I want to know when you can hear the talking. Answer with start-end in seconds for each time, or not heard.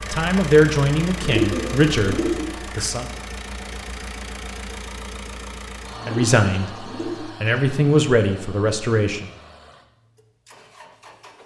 0.1-3.0, 6.0-9.3.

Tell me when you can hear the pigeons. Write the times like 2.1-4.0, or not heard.
1.2-2.5, 6.0-7.2.